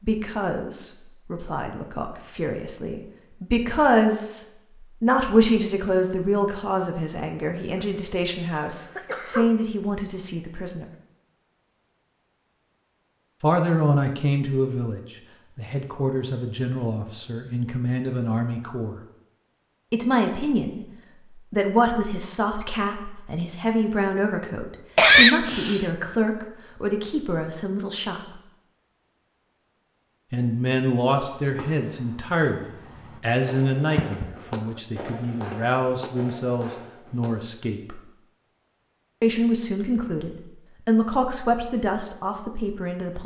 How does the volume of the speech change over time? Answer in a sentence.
The loudness of the speech stays about the same.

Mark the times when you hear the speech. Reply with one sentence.
The speech can be heard from 0.0 to 10.8 s, from 13.4 to 19.0 s, from 19.9 to 28.4 s, from 30.3 to 38.0 s and from 39.2 to 43.2 s.